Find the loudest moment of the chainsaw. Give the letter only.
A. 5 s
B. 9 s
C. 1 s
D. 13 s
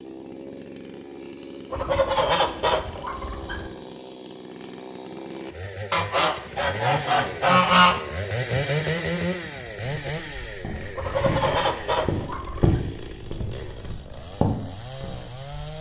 B.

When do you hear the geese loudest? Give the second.
8 s.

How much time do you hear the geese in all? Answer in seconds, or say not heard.
6 s.